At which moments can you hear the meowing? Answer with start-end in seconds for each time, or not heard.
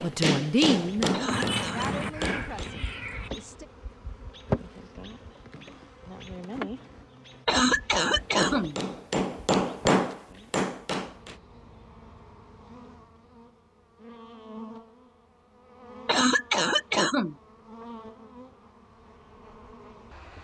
1.2-3.3.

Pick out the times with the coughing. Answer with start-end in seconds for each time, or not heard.
1.1-1.9, 7.5-8.8, 16.1-17.4.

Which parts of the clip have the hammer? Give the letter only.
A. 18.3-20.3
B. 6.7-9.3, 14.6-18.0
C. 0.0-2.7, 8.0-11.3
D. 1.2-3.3
C.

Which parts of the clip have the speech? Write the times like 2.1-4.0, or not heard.
0.0-3.6.